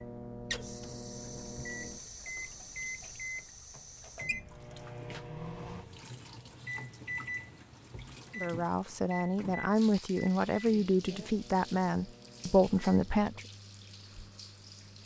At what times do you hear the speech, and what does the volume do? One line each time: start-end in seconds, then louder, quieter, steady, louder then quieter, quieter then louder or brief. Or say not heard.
8.3-13.4 louder.